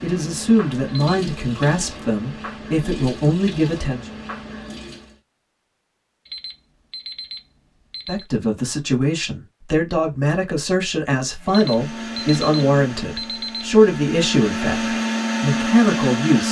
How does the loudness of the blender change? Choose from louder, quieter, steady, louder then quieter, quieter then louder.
louder.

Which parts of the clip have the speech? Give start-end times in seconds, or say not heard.
0.0-4.0, 8.1-16.4.